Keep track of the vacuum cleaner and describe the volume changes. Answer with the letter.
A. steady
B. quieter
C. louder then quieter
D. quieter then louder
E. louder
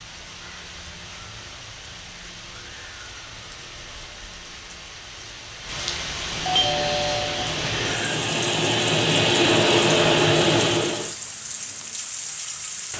E.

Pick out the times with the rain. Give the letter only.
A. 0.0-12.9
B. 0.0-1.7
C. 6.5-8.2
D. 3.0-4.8
A.